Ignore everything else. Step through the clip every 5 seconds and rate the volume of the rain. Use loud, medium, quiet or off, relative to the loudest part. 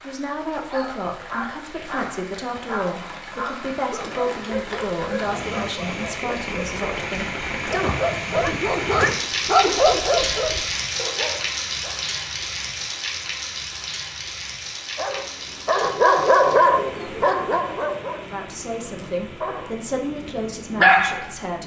medium, loud, loud, medium, quiet.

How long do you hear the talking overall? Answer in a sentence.
You can hear the talking for 11 seconds altogether.